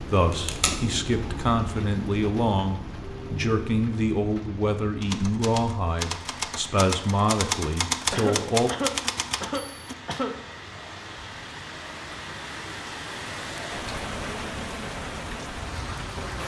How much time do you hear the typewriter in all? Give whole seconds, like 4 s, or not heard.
5 s.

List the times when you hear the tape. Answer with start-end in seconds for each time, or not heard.
0.3-0.8.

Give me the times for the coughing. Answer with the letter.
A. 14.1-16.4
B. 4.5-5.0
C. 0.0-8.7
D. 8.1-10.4
D.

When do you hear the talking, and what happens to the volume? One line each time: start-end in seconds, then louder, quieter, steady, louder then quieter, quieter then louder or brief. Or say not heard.
0.0-8.7 steady.